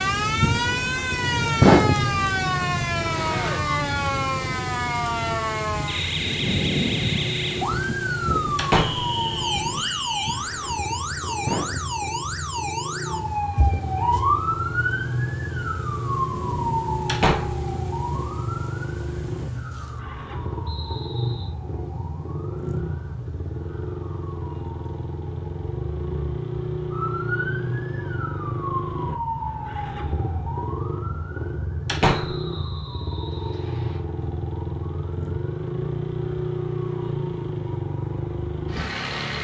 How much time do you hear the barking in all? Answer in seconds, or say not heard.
not heard.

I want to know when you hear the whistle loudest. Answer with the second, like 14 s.
9 s.